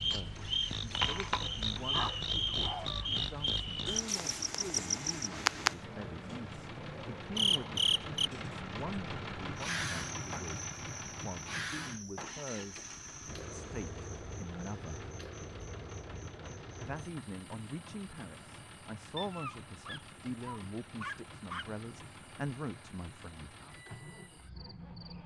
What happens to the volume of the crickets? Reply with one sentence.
The loudness of the crickets goes down.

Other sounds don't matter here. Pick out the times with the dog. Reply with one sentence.
The dog can be heard from 1.4 to 3.1 s and from 19.1 to 21.6 s.